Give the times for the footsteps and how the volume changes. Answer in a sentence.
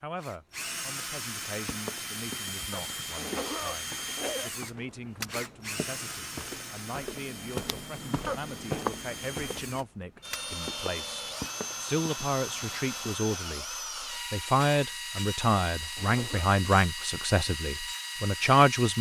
The footsteps can be heard from 1.5 to 13.1 s, getting louder then quieter.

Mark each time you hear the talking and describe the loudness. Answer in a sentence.
The talking can be heard from 0.0 to 18.9 s, getting louder.